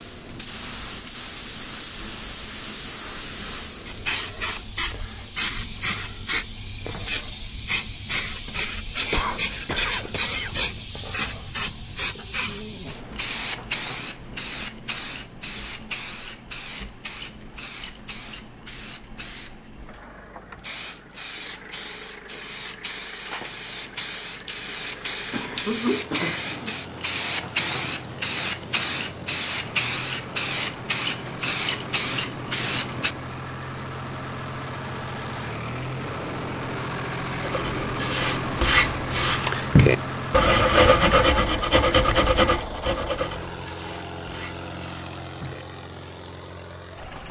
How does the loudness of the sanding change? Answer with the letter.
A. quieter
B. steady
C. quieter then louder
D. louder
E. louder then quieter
E.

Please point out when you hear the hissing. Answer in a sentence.
You can hear the hissing from 0.0 to 33.1 s.